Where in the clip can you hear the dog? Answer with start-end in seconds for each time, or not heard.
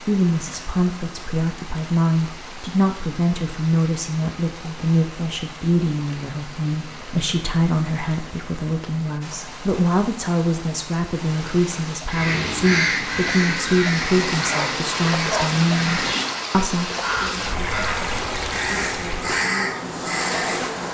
14.4-15.7.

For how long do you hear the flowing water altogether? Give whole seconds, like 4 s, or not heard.
21 s.